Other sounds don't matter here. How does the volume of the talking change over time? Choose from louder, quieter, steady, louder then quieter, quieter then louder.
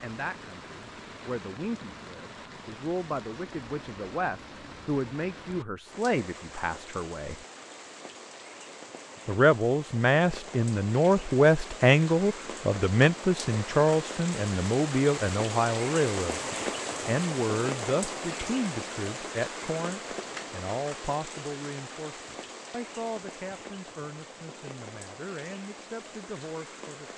louder then quieter.